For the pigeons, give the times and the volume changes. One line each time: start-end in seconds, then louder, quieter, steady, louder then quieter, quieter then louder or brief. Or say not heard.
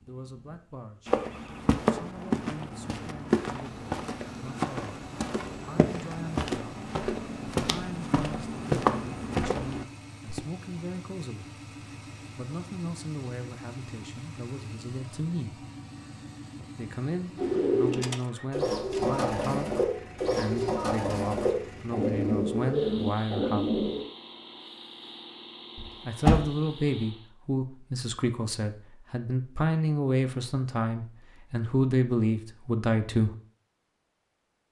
17.4-24.1 steady.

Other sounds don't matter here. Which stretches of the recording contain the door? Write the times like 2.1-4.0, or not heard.
25.8-26.4.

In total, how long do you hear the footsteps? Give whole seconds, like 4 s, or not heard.
9 s.